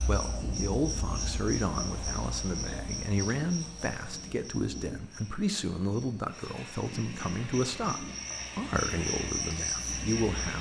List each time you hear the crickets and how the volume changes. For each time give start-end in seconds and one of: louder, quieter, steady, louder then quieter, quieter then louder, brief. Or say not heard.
0.0-10.5 quieter then louder.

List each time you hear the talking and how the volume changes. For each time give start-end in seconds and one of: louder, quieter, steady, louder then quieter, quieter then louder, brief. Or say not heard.
0.1-10.5 steady.